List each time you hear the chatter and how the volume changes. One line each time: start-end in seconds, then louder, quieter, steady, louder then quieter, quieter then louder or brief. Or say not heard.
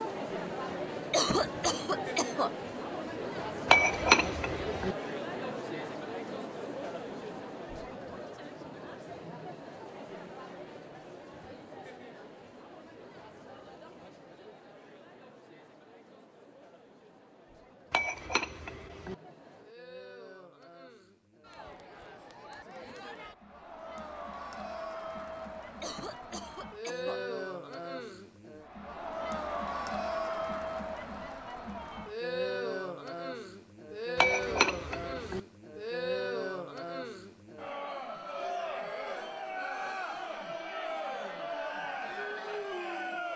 0.0-43.3 quieter then louder.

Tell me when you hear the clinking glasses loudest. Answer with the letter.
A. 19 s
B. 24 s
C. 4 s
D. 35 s
C.